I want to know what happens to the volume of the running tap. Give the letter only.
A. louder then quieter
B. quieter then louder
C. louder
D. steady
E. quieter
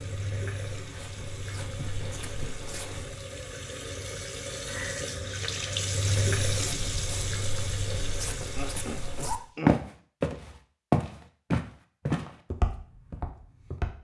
A.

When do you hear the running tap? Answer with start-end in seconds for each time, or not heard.
0.0-9.5.